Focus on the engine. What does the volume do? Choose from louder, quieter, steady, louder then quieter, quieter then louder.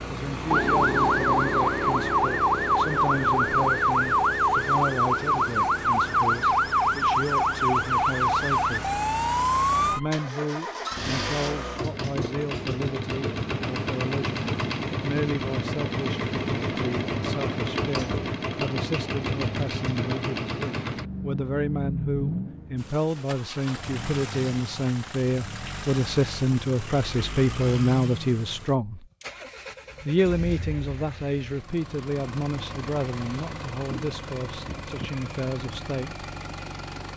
louder then quieter.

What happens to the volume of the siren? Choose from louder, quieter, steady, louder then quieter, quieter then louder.
steady.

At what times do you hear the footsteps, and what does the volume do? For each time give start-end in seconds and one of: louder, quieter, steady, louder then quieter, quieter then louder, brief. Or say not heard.
not heard.